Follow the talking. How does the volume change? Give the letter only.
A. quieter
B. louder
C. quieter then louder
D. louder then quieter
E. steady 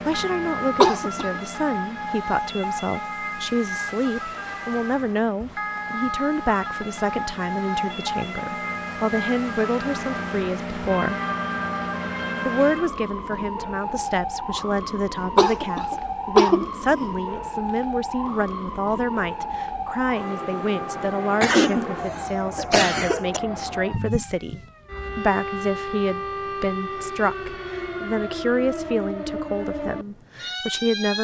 E.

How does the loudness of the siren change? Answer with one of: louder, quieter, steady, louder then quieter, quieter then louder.
steady.